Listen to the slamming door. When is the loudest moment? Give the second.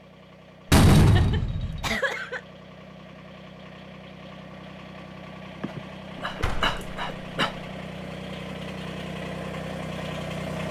1 s.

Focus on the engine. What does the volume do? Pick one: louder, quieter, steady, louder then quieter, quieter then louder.
louder.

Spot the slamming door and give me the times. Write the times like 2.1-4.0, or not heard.
0.7-1.9, 6.4-7.5.